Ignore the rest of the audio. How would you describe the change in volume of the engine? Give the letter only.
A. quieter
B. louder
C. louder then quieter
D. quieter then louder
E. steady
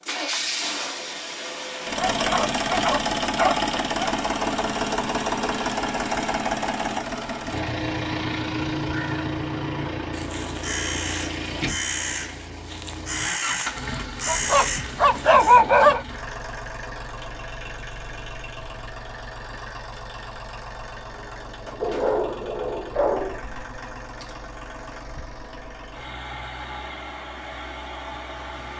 A.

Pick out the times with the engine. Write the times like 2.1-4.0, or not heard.
0.0-28.7.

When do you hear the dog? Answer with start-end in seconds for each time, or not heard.
1.9-4.1, 14.2-16.1, 21.8-23.4.